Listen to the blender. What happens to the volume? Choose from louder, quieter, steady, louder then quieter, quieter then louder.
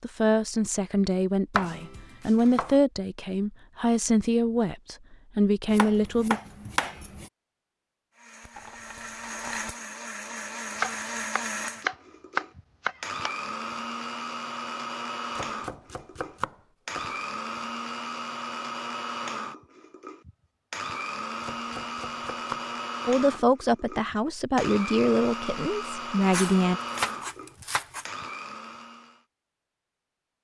steady.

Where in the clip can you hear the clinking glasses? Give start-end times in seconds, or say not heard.
8.6-9.7.